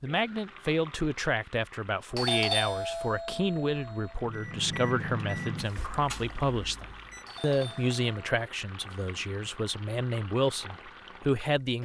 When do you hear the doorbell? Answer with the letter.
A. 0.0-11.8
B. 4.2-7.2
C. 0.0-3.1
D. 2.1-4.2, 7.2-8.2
D.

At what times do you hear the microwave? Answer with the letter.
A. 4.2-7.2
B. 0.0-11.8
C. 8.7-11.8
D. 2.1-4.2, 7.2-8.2
A.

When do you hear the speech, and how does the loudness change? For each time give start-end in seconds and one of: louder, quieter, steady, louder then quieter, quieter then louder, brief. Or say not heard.
0.0-11.8 steady.